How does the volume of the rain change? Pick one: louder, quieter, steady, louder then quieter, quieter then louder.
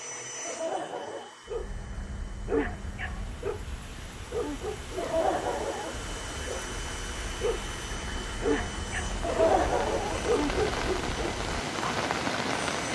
louder.